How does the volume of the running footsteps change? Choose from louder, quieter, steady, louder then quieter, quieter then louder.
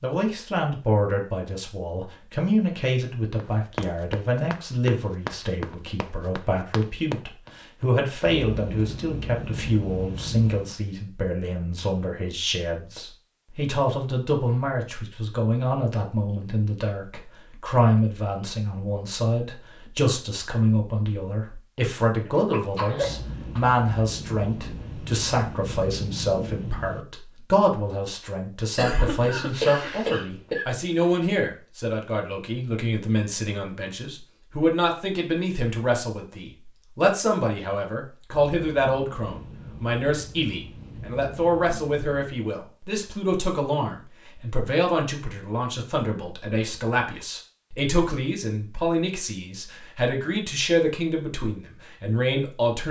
quieter then louder.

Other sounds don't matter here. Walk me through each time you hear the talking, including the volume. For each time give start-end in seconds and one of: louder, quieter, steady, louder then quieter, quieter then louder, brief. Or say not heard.
0.0-52.8 steady.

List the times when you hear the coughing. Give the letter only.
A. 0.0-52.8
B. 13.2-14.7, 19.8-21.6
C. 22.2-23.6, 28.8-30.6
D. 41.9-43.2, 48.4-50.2
C.